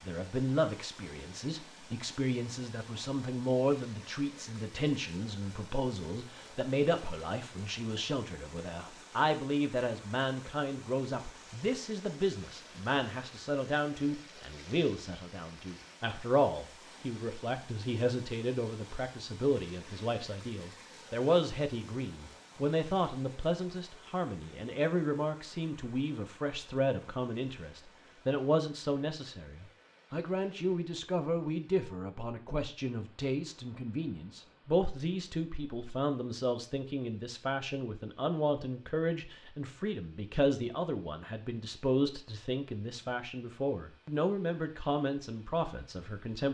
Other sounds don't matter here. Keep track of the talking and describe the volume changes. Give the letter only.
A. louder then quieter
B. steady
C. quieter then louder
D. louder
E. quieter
B.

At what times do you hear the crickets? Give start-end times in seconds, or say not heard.
not heard.